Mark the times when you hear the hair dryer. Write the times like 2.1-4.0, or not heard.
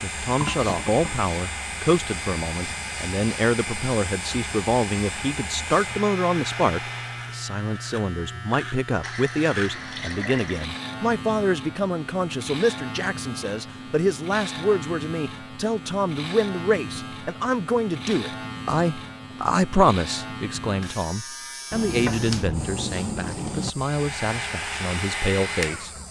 0.0-7.5, 23.8-26.0.